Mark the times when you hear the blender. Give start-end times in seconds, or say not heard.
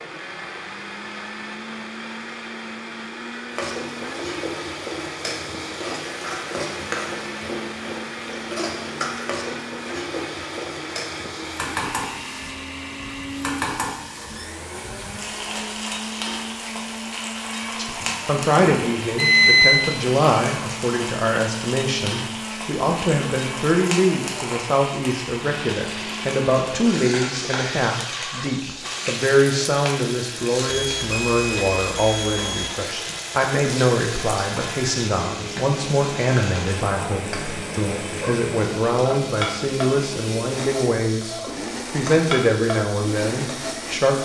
0.0-44.2.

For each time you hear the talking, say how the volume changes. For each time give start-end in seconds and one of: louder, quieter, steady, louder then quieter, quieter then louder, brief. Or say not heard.
17.8-44.2 steady.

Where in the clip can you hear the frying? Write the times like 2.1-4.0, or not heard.
3.5-44.2.